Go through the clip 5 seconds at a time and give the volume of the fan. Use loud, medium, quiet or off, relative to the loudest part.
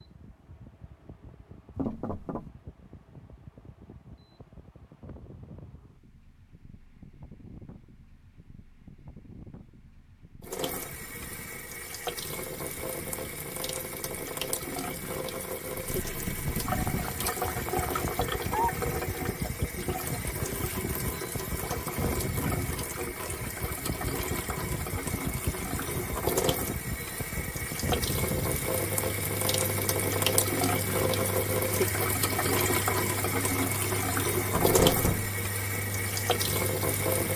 quiet, quiet, quiet, loud, loud, loud, loud, loud.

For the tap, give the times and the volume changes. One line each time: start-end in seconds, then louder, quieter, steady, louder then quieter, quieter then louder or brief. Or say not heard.
10.4-37.3 louder.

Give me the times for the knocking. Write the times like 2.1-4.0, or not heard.
1.8-2.5, 16.9-18.7, 34.6-35.3.